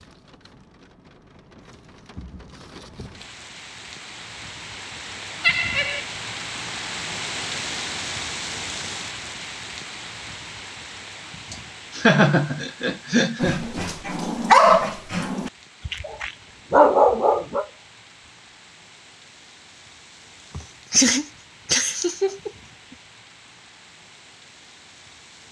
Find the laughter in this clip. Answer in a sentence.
The laughter can be heard from 5.4 to 6.0 s, from 11.5 to 13.7 s and from 20.6 to 22.5 s.